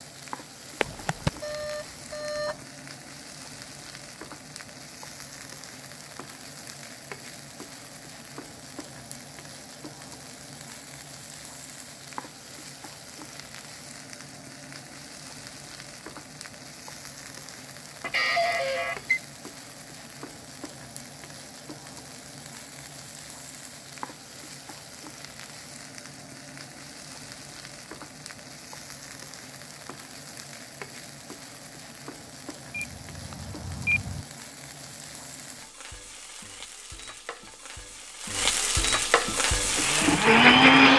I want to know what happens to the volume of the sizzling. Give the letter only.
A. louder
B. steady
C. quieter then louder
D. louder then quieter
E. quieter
A.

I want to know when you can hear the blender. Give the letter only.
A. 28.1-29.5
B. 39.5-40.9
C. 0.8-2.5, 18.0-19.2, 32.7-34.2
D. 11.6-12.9
B.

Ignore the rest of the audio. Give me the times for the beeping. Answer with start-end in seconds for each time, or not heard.
0.8-2.5, 18.0-19.2, 32.7-34.2.